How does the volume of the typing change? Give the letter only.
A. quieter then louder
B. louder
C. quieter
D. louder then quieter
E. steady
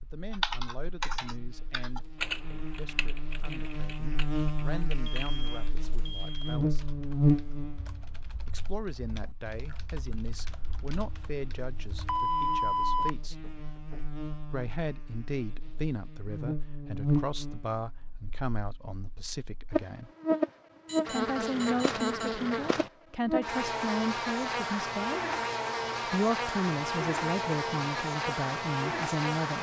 C.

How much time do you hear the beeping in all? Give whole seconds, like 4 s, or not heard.
5 s.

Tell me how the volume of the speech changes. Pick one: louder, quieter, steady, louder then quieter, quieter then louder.
louder.